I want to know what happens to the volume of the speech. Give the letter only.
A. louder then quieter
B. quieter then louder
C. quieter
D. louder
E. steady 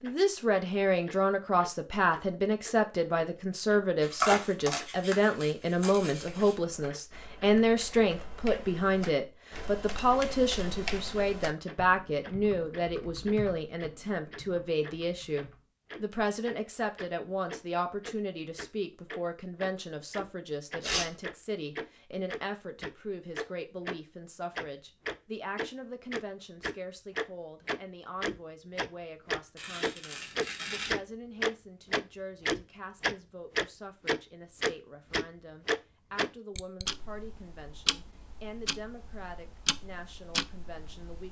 C.